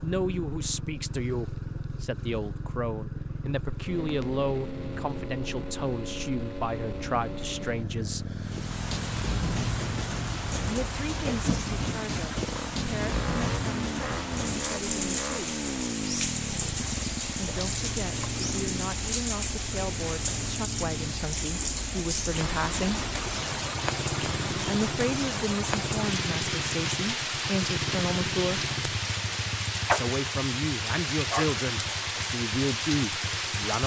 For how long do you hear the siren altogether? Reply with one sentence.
You can't hear the siren here.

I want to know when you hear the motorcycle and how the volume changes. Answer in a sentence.
The motorcycle can be heard from 0.0 to 33.8 s, at a steady volume.